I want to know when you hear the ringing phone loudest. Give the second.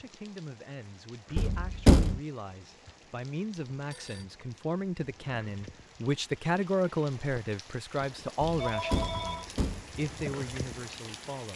9 s.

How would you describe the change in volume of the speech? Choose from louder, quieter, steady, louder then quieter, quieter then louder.
louder then quieter.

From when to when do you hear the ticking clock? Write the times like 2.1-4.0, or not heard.
not heard.